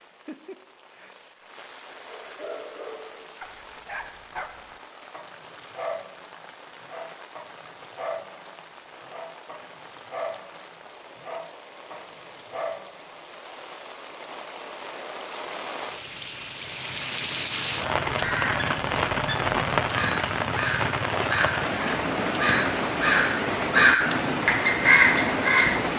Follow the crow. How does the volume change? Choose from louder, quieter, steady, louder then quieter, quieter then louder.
louder.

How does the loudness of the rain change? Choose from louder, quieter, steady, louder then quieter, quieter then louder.
louder.